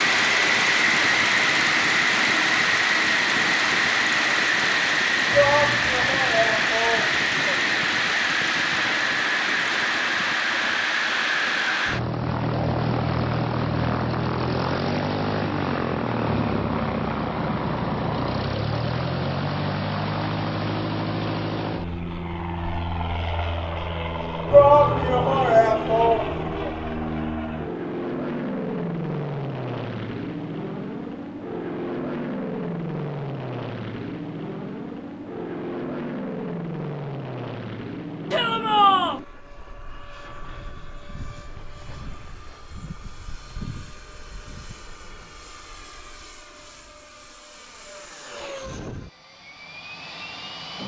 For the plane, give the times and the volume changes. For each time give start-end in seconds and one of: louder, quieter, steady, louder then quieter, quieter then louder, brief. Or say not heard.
0.0-50.8 quieter.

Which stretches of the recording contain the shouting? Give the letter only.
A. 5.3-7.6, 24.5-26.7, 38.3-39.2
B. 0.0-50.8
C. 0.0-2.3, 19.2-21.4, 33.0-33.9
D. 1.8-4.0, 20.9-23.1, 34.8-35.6
A.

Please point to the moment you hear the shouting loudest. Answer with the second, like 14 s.
25 s.